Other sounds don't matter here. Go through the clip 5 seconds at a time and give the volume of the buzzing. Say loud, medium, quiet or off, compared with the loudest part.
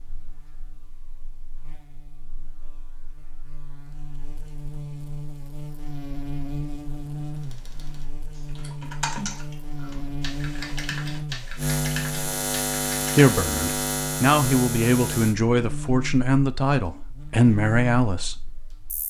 quiet, medium, loud, medium.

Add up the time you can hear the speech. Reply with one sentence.
The speech can be heard for 5 seconds in total.